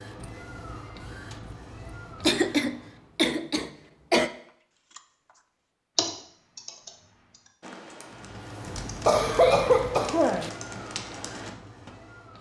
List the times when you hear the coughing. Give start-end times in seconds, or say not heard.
2.2-4.3, 9.1-10.5.